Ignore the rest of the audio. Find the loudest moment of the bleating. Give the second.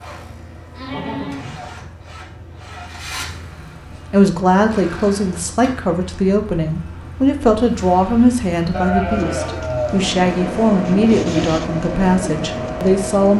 9 s.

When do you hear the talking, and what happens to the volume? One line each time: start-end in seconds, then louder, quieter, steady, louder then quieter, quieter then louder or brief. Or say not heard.
3.6-13.3 steady.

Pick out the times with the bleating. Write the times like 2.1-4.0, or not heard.
0.7-1.9, 8.7-10.1.